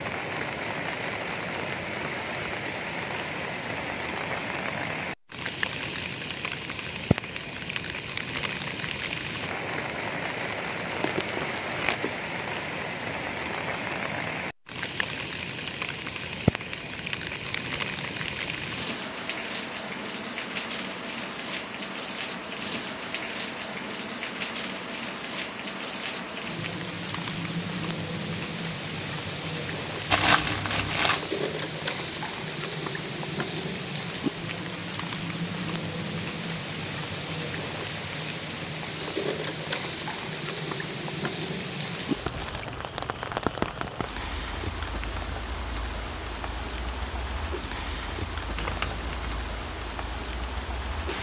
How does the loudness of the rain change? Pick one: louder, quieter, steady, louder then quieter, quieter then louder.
steady.